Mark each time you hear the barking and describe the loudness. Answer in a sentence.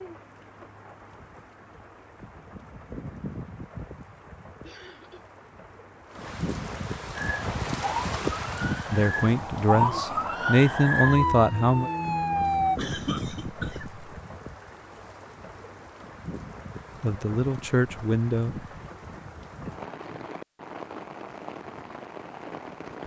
The barking can't be heard in this clip.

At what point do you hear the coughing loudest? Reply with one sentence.
The volume of the coughing peaks at 13 seconds.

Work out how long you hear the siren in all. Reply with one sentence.
The siren can be heard for 6 seconds in total.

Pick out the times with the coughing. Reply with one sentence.
The coughing can be heard from 4.6 to 5.2 s and from 12.8 to 14.0 s.